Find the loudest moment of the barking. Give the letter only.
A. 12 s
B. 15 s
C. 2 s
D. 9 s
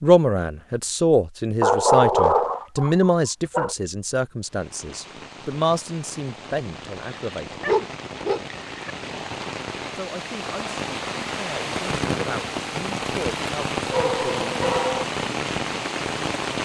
C.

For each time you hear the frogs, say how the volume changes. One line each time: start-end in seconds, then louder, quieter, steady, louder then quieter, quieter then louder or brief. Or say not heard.
not heard.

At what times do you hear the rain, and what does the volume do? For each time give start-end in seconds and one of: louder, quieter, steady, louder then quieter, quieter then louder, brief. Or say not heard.
4.4-16.6 louder.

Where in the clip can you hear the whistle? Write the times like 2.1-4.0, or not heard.
not heard.